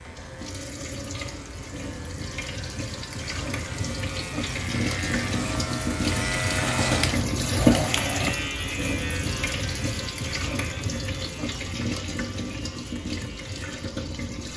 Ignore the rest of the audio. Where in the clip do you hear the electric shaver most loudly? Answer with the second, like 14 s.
7 s.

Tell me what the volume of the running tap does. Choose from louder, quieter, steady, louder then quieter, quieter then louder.
louder then quieter.